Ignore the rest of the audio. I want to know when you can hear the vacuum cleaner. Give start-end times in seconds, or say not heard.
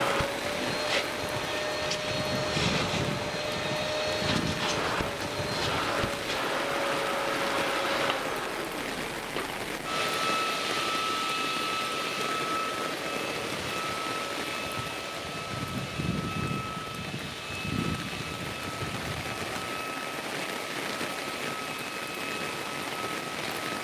0.0-23.7.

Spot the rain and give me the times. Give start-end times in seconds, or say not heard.
0.0-23.7.